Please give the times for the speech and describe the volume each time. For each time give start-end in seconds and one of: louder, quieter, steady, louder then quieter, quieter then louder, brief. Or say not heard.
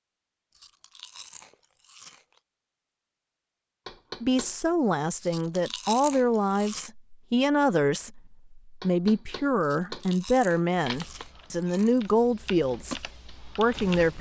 4.2-14.1 steady.